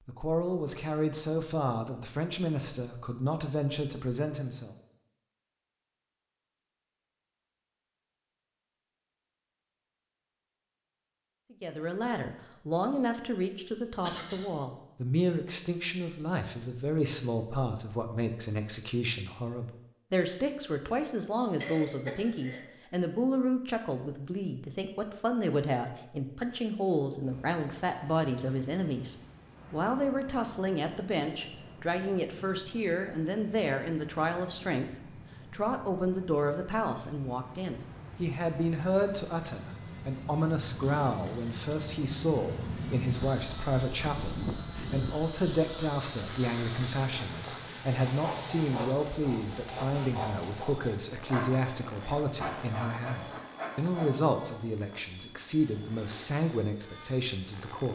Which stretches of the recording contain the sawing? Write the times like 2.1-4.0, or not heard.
46.1-54.2.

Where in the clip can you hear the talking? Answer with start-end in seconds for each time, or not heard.
0.1-4.7, 11.5-34.9, 35.5-57.9.